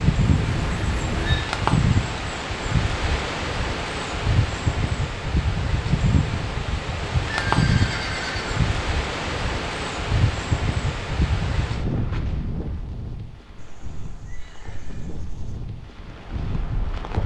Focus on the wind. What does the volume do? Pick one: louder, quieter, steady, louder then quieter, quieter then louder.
quieter.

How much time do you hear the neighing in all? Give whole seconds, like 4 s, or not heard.
5 s.